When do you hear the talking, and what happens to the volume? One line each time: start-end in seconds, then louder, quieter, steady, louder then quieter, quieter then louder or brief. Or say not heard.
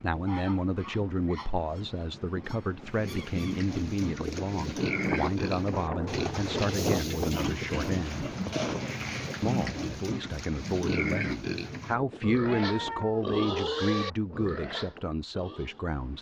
0.0-8.2 steady
9.4-16.1 louder then quieter.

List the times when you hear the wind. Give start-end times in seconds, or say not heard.
0.0-16.1.